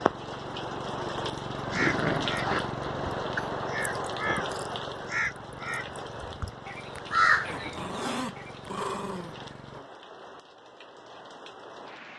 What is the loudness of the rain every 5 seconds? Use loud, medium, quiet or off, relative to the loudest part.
loud, medium, quiet.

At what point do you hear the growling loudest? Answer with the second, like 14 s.
2 s.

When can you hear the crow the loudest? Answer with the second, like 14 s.
7 s.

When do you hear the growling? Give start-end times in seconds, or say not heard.
1.7-2.6, 7.5-9.9.